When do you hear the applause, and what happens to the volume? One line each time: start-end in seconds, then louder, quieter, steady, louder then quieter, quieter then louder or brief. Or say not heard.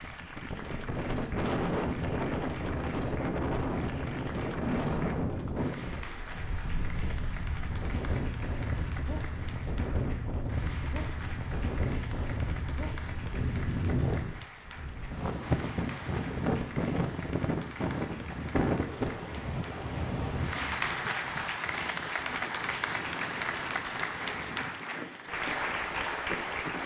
0.0-26.8 louder.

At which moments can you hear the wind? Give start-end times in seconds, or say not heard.
0.0-26.8.